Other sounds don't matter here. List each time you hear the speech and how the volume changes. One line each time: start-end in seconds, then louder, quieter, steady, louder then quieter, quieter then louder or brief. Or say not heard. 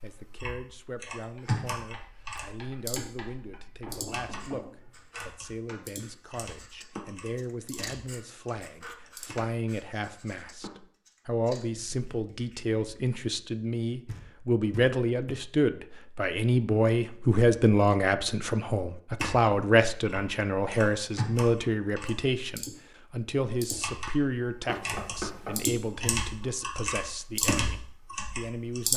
0.0-28.9 louder then quieter.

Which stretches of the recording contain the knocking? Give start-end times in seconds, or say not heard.
3.9-5.0, 14.1-15.4, 24.6-25.6.